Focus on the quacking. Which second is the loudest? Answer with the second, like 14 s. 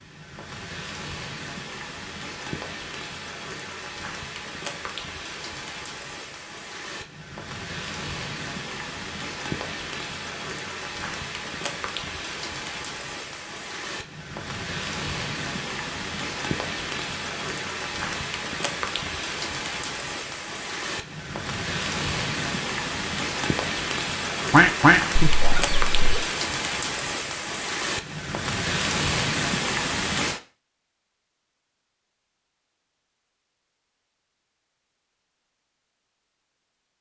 25 s.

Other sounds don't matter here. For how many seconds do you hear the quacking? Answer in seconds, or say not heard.
2 s.